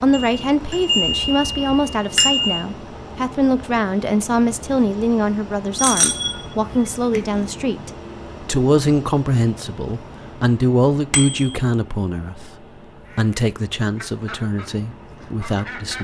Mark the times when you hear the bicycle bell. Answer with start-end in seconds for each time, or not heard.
0.1-2.6, 5.8-7.5, 11.1-11.6.